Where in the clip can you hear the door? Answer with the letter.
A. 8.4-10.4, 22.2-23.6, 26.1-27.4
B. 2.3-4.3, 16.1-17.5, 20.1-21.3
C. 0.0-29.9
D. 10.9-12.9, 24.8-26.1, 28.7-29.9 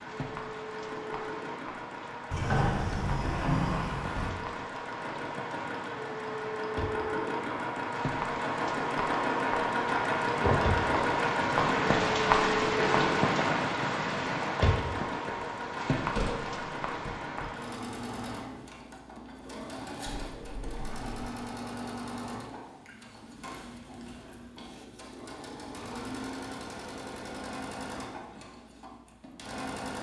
B.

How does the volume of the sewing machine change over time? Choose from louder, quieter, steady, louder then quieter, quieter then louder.
louder then quieter.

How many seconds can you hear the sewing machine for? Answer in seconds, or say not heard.
30 s.